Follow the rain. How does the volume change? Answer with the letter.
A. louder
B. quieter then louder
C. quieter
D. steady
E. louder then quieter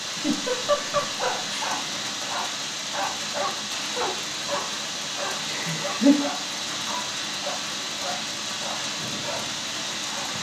D.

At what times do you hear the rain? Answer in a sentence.
You can hear the rain from 0.0 to 10.3 s.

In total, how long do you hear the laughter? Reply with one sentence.
You can hear the laughter for 2 seconds altogether.